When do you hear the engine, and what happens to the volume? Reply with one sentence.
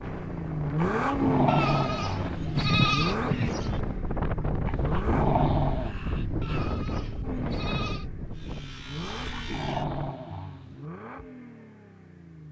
The engine can be heard from 0.0 to 12.4 s, getting quieter.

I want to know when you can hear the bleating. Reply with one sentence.
The bleating can be heard from 1.4 to 3.8 s and from 6.4 to 8.1 s.